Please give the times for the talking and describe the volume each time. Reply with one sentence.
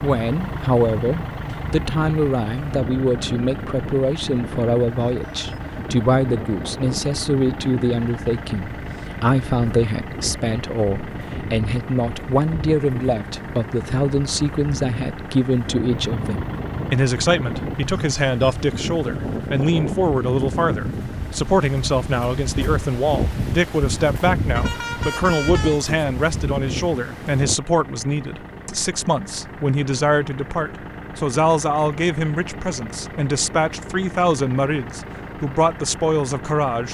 You can hear the talking from 0.0 to 36.9 s, at a steady volume.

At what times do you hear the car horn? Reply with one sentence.
The car horn can be heard from 24.6 to 25.9 s.